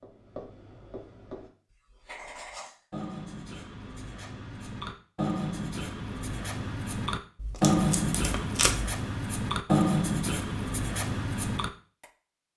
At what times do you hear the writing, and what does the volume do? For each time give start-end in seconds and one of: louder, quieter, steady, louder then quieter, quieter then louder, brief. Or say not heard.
0.0-12.1 louder.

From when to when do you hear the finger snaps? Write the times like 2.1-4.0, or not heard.
not heard.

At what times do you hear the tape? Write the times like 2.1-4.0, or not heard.
7.3-8.9.